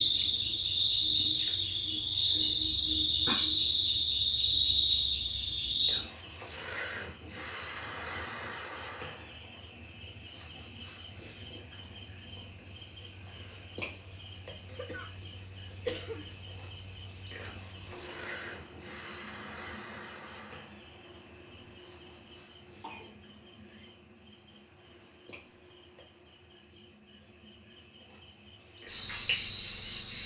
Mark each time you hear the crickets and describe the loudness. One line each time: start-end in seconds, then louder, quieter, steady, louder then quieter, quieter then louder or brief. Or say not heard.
0.0-30.2 quieter.